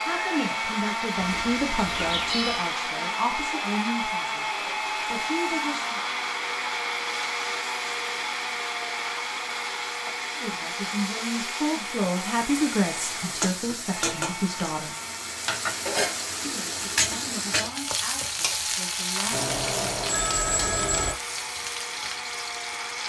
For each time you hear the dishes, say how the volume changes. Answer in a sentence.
The dishes can't be heard in this clip.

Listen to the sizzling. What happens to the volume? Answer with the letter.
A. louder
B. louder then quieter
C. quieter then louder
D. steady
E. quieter
A.